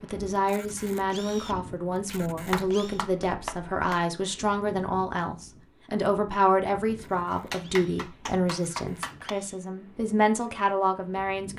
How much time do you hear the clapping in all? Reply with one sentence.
The clapping can be heard for 4 seconds in total.